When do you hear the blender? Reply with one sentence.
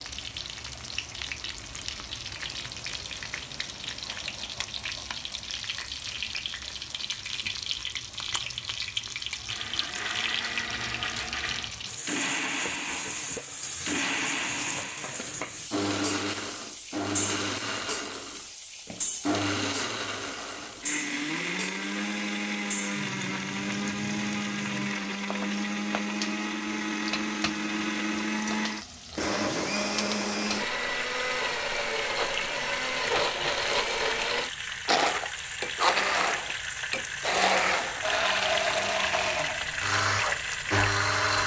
You can hear the blender from 9.3 to 41.4 s.